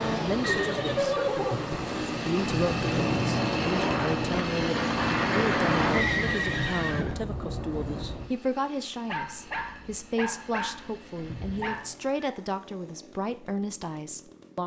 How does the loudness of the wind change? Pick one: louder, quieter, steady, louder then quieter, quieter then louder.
louder then quieter.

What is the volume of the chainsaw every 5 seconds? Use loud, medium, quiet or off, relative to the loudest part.
loud, loud, quiet.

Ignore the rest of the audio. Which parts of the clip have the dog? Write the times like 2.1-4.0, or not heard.
9.1-11.9.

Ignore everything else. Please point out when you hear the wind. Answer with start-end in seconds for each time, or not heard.
0.0-8.2.